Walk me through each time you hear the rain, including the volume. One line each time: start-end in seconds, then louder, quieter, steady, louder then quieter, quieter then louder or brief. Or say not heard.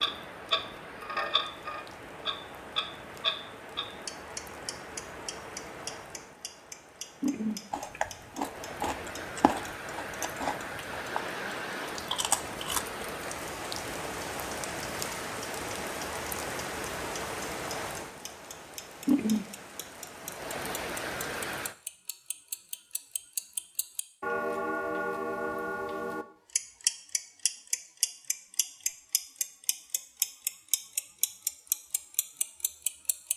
0.0-21.8 louder.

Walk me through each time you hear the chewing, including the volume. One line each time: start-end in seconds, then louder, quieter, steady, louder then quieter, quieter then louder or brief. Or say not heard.
7.7-13.1 steady.